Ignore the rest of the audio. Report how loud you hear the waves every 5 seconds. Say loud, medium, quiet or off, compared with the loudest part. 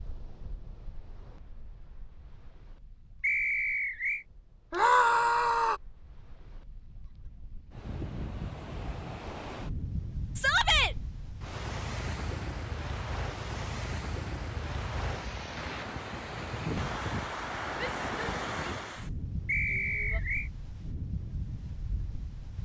quiet, medium, loud, loud, medium.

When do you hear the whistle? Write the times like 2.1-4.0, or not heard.
3.2-4.2, 19.4-20.5.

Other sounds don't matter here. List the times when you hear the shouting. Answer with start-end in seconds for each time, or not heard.
4.7-5.8, 10.3-10.9, 17.8-19.1, 19.7-20.2.